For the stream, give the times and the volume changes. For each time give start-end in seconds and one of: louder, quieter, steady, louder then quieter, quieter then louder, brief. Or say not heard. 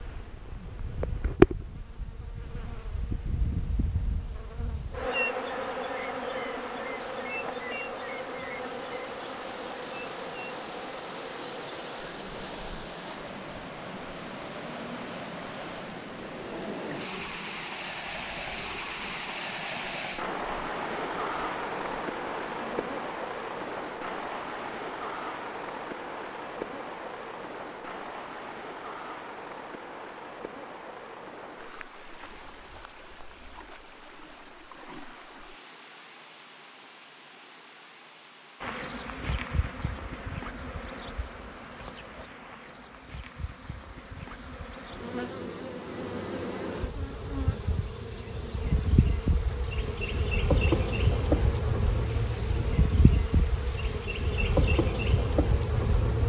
0.0-56.2 louder then quieter.